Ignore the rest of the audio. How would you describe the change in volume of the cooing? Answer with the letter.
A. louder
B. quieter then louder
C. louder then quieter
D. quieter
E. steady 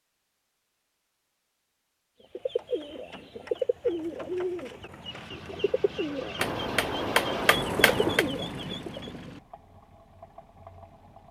B.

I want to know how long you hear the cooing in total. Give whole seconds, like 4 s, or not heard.
7 s.